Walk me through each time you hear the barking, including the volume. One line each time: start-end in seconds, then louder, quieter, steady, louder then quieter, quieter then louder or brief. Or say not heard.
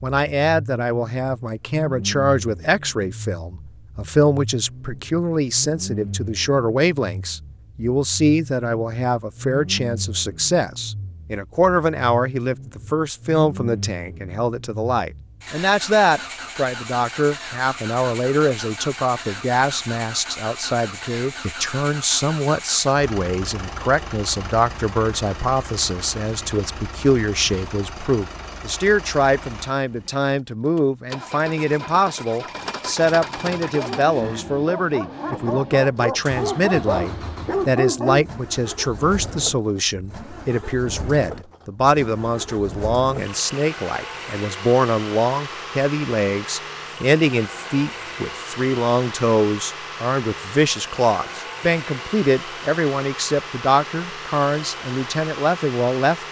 33.1-38.2 louder.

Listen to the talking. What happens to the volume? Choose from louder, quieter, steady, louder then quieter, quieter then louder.
steady.